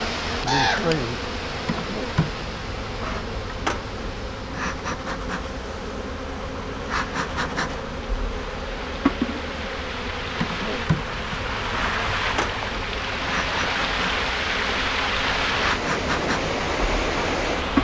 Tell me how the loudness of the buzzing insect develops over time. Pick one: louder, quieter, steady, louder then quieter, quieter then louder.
steady.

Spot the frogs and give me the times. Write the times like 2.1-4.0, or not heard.
not heard.